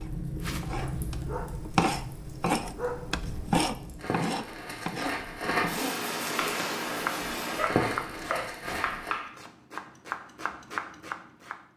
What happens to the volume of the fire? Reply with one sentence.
The loudness of the fire goes down, then up.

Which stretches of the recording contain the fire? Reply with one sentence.
The fire can be heard from 0.0 to 9.2 s.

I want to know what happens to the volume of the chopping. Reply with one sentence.
The loudness of the chopping goes down.